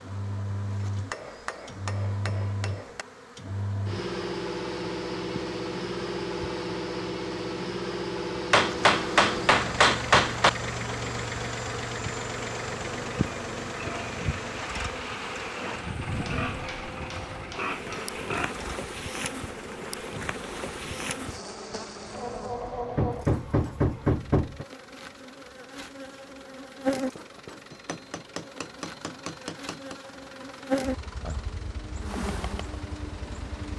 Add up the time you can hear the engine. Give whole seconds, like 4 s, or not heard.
34 s.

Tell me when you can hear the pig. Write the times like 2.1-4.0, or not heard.
13.7-18.6.